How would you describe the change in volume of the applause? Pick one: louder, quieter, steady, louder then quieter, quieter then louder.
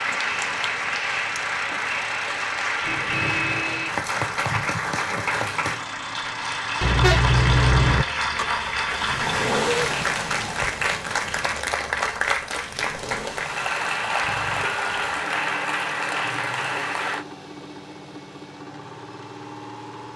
steady.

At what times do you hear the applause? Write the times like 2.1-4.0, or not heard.
0.0-17.2.